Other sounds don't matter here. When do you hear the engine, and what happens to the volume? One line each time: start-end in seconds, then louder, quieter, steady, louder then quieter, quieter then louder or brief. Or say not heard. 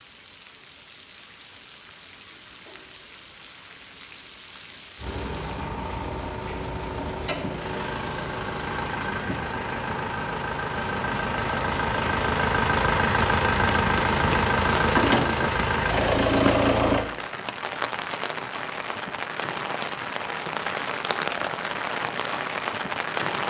5.0-17.1 louder.